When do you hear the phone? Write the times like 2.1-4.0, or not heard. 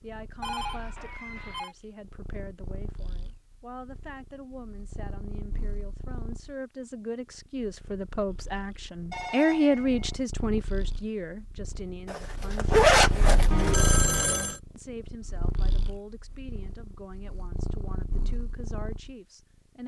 0.4-1.8, 9.1-10.2, 13.5-14.6.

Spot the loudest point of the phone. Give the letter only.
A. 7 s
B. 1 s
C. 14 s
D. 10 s
C.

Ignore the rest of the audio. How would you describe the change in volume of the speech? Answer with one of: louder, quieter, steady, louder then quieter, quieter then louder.
louder then quieter.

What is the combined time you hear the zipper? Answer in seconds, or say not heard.
2 s.